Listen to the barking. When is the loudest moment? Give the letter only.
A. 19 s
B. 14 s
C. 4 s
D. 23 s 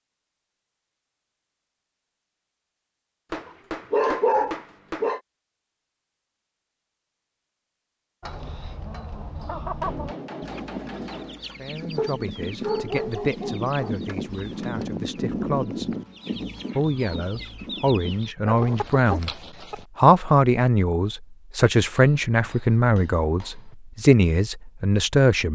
C.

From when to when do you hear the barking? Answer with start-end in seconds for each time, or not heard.
3.9-5.2, 11.9-13.9, 18.4-19.3.